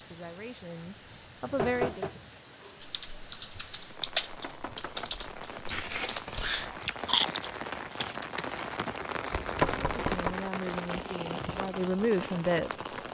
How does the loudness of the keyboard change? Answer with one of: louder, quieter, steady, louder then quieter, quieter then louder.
quieter.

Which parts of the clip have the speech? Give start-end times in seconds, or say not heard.
0.0-2.0, 9.9-12.9.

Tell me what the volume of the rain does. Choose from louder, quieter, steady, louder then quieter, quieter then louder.
louder.